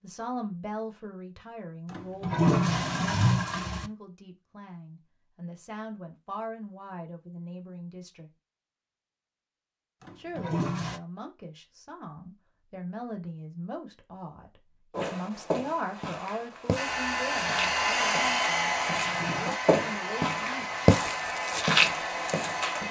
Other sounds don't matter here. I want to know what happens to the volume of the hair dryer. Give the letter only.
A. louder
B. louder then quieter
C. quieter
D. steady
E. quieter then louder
C.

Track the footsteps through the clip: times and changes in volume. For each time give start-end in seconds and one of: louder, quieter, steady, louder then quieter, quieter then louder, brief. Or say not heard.
14.9-22.8 louder.